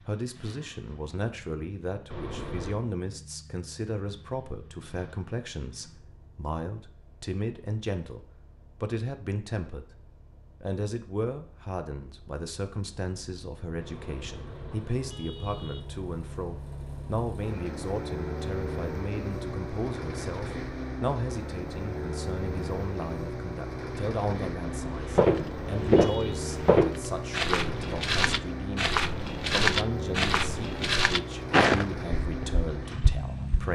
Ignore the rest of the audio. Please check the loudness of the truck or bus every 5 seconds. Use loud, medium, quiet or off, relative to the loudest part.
quiet, quiet, quiet, loud, loud, loud, loud.